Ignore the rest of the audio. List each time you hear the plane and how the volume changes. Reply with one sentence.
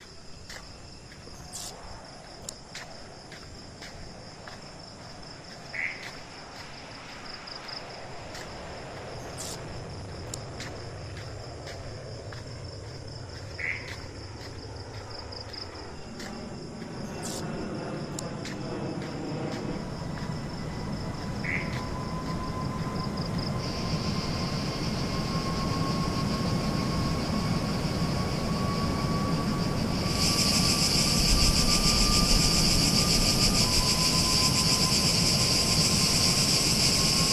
You can hear the plane from 0.0 to 37.2 s, getting louder.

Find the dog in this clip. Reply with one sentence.
You can't hear the dog here.